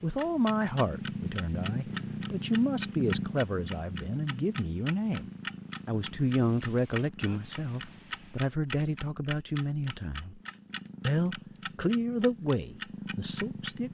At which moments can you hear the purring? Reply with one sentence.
The purring can be heard from 0.0 to 13.8 s.